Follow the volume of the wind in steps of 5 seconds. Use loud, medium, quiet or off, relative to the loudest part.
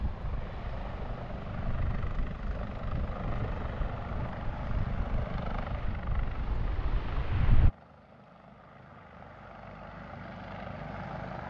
medium, loud, off.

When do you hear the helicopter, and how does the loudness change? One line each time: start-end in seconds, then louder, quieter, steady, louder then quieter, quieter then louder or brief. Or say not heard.
0.0-11.4 quieter then louder.